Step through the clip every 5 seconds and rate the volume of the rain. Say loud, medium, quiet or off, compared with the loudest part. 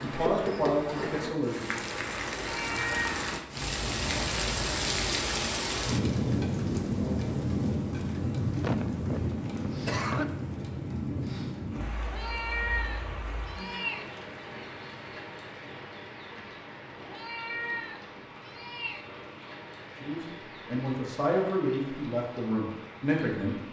loud, loud, medium, quiet, quiet.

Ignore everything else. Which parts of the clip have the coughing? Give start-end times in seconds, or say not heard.
8.6-10.3.